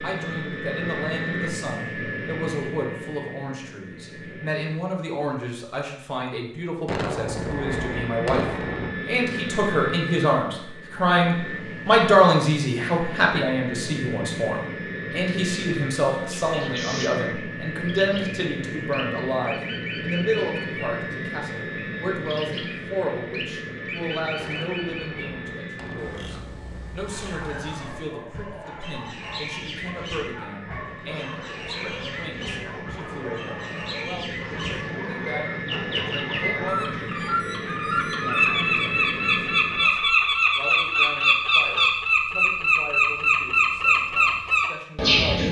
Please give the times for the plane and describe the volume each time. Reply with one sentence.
The plane can be heard from 0.0 to 4.9 s, getting quieter; and from 7.2 to 40.0 s, getting quieter then louder.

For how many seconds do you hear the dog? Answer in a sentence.
The dog can be heard for 10 seconds in total.